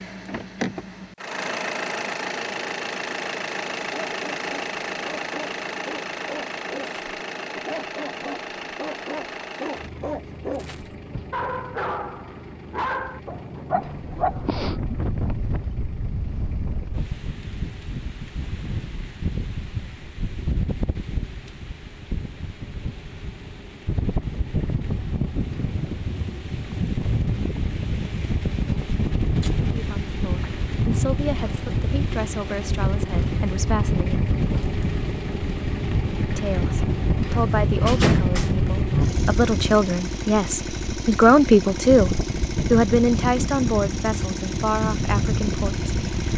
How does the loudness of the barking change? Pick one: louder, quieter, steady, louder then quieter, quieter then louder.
louder.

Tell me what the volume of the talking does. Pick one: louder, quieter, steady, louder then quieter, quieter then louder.
louder then quieter.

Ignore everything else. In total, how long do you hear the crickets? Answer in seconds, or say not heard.
not heard.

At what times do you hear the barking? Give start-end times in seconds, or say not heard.
3.8-15.1.